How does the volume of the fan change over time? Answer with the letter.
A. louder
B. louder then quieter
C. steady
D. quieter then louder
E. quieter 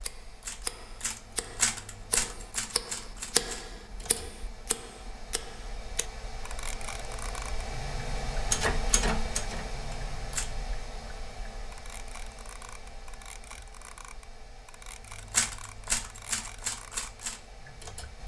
B.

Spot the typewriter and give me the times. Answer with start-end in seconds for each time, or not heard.
0.0-4.3, 8.4-10.4, 15.2-18.2.